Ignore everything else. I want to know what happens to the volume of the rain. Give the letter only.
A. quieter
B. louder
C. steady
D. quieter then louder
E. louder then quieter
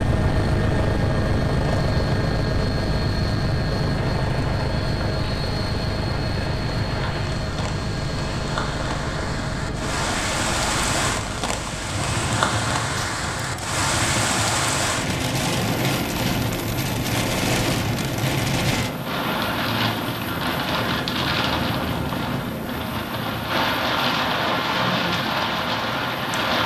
B.